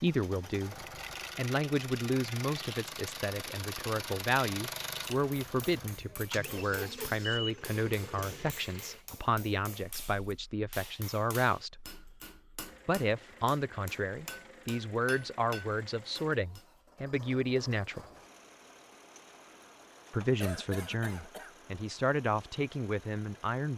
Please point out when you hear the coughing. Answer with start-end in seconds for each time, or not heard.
20.4-21.6.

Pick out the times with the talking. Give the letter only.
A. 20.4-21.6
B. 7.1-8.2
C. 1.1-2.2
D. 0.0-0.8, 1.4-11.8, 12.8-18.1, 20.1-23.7
D.